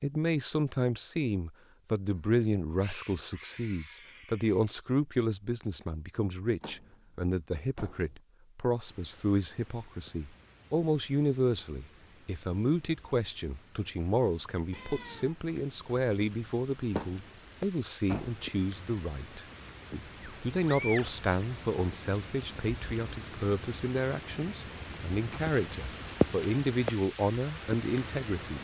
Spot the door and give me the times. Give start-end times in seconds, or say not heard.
6.6-8.2, 16.9-18.4.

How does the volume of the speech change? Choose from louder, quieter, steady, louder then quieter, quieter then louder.
steady.